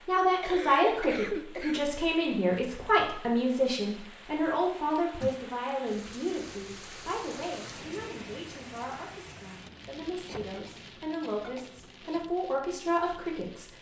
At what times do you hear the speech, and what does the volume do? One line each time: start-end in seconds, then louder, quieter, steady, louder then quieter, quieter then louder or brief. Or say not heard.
0.1-13.7 quieter then louder.